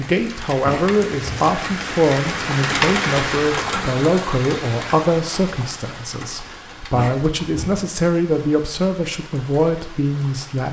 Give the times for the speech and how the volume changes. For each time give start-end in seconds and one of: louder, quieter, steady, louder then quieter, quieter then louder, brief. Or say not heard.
0.0-10.6 steady.